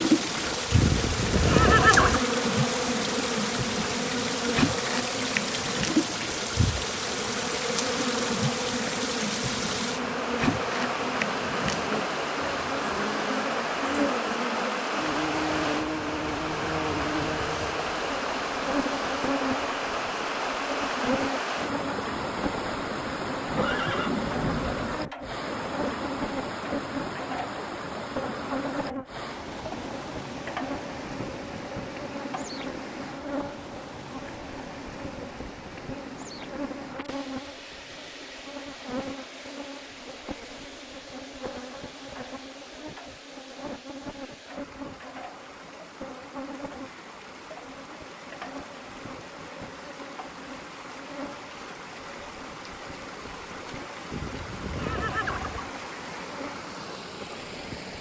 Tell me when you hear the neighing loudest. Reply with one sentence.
The volume of the neighing peaks at 2 seconds.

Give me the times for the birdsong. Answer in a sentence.
The birdsong can't be heard in this clip.